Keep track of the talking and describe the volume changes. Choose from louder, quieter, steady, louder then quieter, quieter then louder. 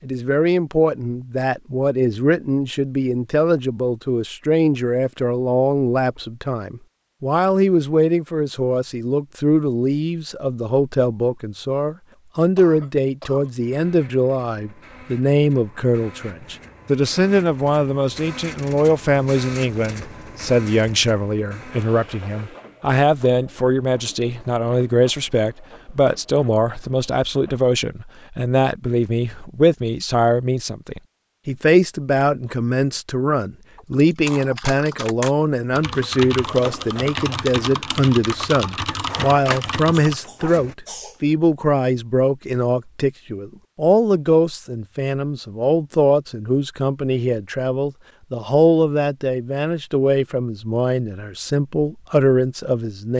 steady.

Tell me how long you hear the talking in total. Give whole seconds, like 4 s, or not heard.
53 s.